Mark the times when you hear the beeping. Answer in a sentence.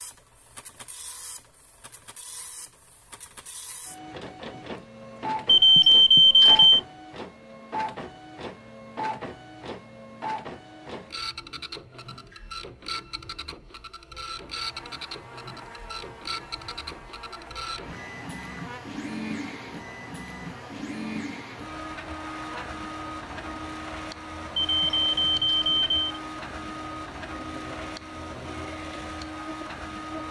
You can hear the beeping from 5.5 to 6.8 s and from 24.6 to 26.2 s.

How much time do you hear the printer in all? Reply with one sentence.
You can hear the printer for 30 seconds altogether.